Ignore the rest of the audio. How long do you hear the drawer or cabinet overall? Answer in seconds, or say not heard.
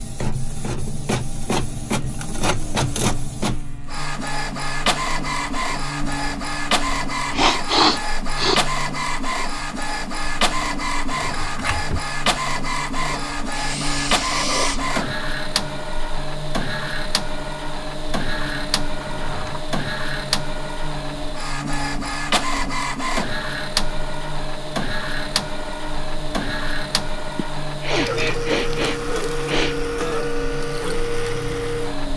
2 s.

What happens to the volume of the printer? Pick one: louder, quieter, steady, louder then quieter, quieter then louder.
steady.